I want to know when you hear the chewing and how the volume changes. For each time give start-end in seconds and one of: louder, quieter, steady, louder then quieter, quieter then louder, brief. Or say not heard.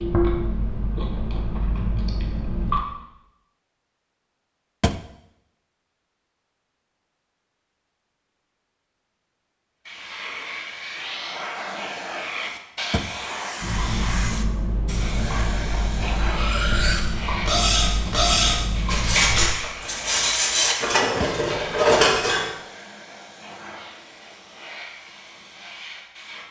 0.0-2.8 brief
13.6-19.4 steady.